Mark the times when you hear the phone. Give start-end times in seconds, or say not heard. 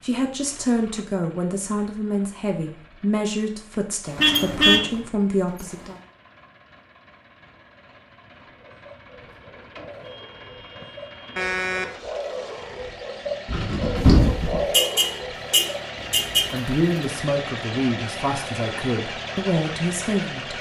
not heard.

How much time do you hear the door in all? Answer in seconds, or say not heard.
3 s.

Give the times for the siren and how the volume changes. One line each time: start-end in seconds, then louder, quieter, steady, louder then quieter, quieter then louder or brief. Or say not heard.
not heard.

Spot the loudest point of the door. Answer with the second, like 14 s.
14 s.